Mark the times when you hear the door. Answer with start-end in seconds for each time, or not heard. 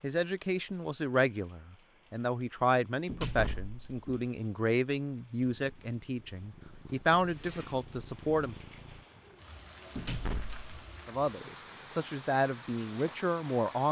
3.0-4.2, 9.9-10.7.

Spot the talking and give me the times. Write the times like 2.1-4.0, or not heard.
0.0-8.6, 11.1-13.8.